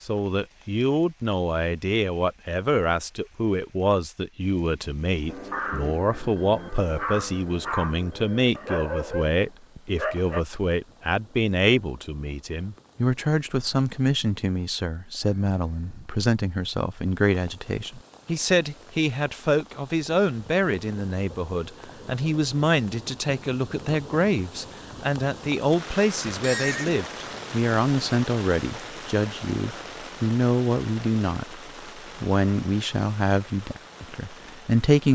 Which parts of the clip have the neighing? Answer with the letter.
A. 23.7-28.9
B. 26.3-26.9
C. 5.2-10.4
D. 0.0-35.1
B.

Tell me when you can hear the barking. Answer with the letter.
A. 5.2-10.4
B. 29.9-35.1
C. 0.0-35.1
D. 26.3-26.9
A.